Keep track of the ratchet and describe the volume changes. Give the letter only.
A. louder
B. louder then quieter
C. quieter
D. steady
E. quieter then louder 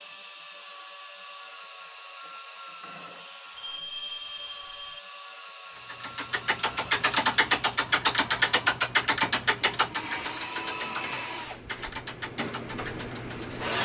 C.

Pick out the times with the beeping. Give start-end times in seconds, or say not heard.
3.5-5.0.